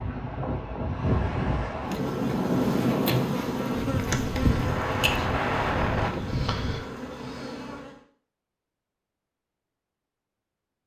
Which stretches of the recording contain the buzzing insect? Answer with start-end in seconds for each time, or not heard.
1.8-8.0.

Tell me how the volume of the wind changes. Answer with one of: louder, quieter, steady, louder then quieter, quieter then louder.
steady.